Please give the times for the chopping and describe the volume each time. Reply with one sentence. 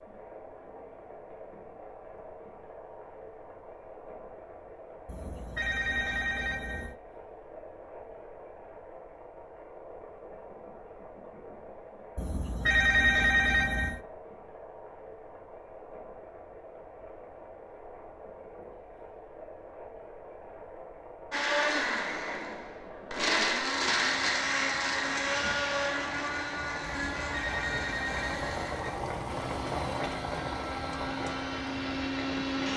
The chopping can't be heard in this clip.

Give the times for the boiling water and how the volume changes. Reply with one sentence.
You can hear the boiling water from 0.0 to 32.7 s, getting louder.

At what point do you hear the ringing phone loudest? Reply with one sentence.
The volume of the ringing phone peaks at 13 seconds.